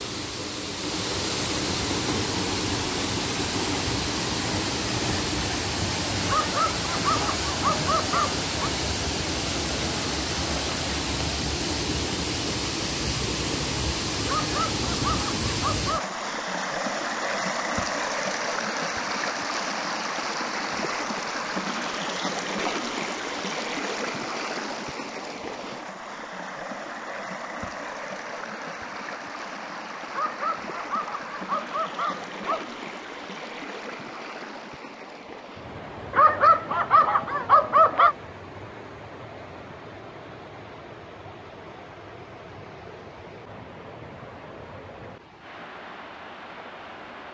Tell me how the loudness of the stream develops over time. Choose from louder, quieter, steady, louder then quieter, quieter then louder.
quieter.